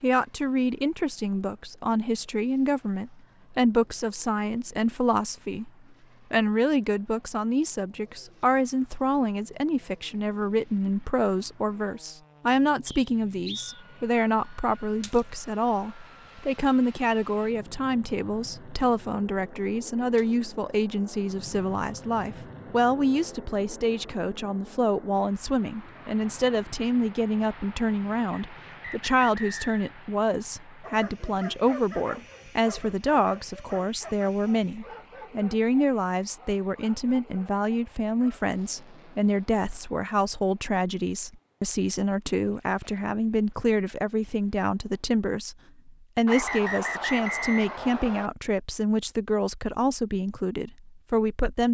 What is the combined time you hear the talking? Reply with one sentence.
You can hear the talking for 51 seconds altogether.